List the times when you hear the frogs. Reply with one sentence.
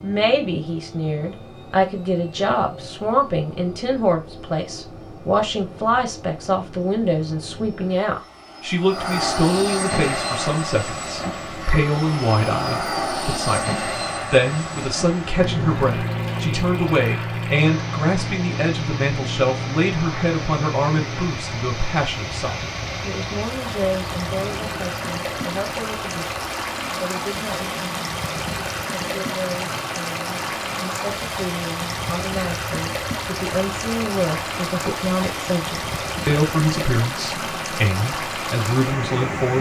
You can't hear the frogs here.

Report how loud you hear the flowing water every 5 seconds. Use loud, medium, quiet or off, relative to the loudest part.
off, off, medium, medium, loud, loud, loud, loud.